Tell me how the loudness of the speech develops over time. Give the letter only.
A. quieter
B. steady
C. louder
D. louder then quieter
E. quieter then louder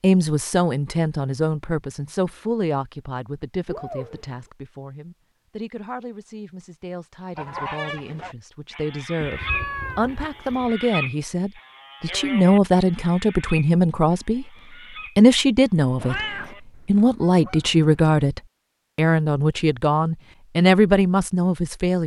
E.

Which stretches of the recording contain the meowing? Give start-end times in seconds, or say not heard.
3.6-4.4, 9.2-10.8, 15.9-16.6.